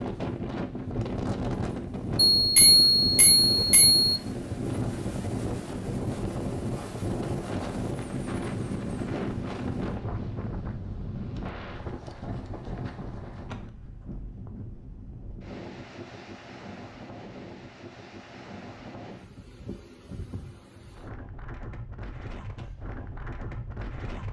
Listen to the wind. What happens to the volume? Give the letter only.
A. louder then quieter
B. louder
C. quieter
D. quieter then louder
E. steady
C.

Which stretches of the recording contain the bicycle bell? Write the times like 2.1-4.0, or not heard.
2.4-4.1.